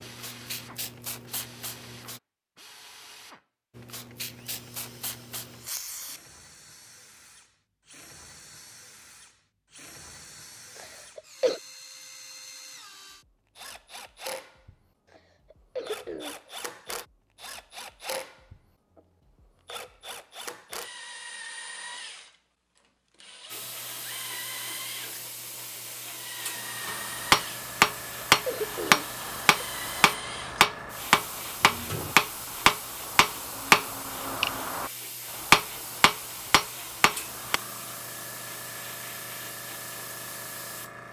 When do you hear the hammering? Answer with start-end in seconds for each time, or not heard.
26.9-37.6.